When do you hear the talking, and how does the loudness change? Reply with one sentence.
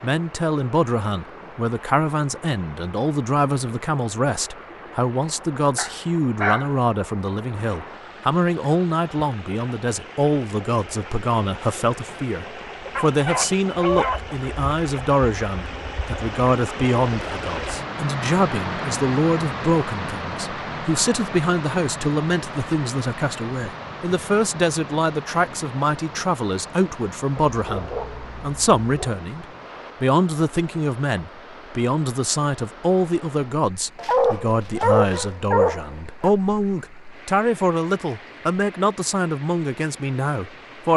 The talking can be heard from 0.0 to 40.9 s, at a steady volume.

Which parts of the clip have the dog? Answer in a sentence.
You can hear the dog from 5.8 to 6.7 s, from 12.9 to 14.4 s, from 27.4 to 29.1 s and from 34.0 to 36.3 s.